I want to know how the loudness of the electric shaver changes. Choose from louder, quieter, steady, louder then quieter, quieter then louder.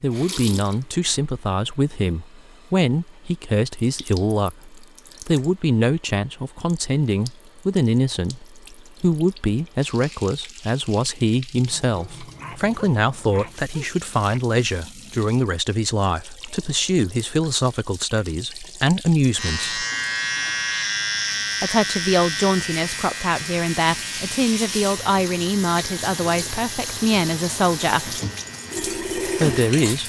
quieter.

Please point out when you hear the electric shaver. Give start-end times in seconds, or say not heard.
19.4-30.0.